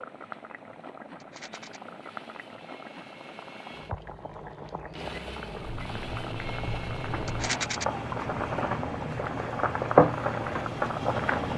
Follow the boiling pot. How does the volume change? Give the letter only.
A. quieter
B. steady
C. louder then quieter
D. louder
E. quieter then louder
D.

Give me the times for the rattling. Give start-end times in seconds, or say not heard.
1.2-1.8, 7.2-7.8.